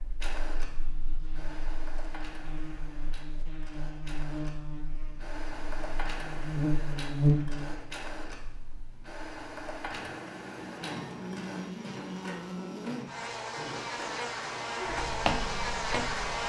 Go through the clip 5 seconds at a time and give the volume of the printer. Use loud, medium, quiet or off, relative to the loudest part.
medium, loud, loud, off.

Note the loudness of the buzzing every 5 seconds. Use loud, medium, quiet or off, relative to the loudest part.
quiet, loud, medium, loud.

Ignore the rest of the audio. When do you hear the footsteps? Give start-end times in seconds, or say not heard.
14.9-16.4.